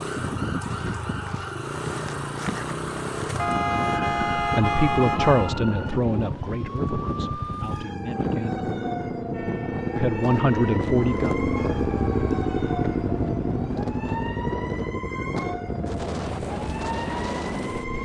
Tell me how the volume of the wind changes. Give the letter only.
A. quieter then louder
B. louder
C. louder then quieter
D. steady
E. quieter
D.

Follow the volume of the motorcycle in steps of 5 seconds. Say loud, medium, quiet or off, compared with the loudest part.
medium, medium, loud, medium.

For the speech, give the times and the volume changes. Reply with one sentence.
You can hear the speech from 4.3 to 8.6 s, getting quieter; and briefly from 9.9 to 11.3 s.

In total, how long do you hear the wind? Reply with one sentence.
The wind can be heard for 18 seconds in total.